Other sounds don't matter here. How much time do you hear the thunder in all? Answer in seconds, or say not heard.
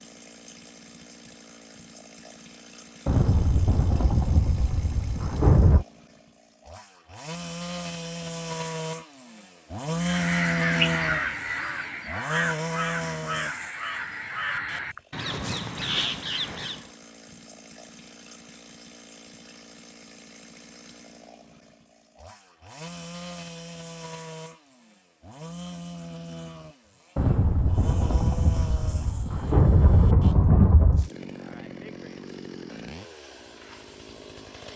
7 s.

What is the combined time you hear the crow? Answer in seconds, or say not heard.
7 s.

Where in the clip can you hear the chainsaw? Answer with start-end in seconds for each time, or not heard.
0.0-34.7.